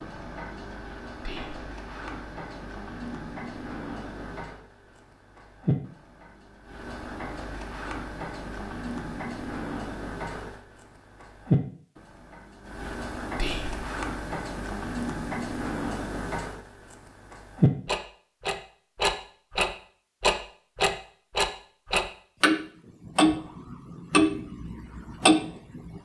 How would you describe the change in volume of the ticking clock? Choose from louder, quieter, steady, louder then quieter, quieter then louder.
louder.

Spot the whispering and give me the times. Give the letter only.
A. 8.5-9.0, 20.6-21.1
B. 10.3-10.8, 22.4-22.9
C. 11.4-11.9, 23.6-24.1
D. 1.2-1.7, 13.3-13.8
D.